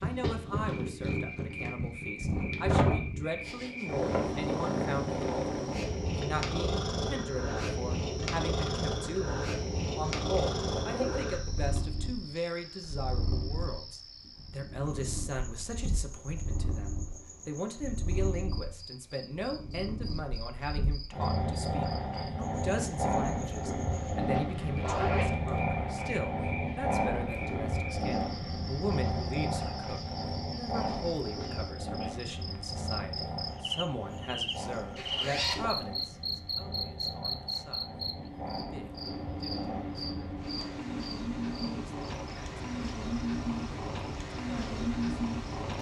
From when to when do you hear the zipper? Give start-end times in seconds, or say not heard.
10.4-11.2, 23.9-25.4, 35.0-35.9.